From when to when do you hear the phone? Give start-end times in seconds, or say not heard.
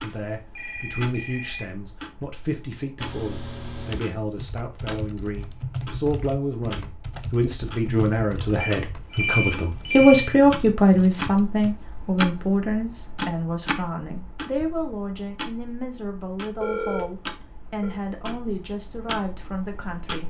0.1-1.6, 8.6-10.3, 16.6-17.9.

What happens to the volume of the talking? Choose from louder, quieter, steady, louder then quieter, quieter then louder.
louder then quieter.